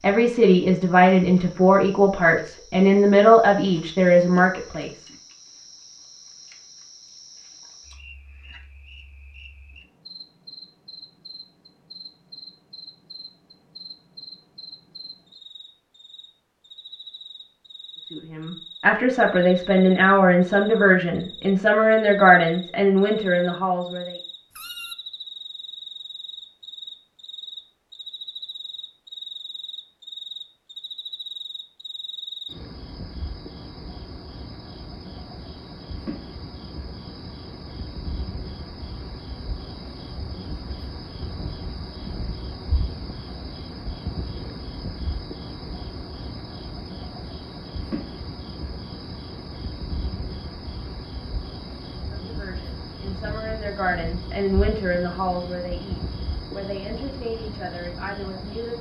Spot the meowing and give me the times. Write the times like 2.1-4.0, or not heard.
24.5-24.9.